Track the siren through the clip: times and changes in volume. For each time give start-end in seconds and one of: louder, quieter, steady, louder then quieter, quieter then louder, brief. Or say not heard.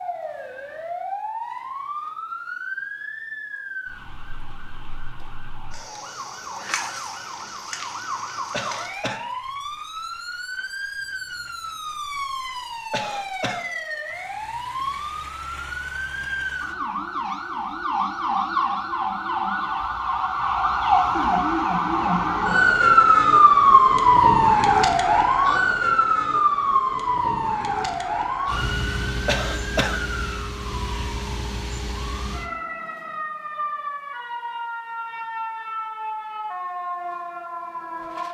0.0-38.2 louder then quieter.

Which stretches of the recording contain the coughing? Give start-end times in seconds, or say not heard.
8.5-9.2, 12.9-13.7, 29.2-30.0.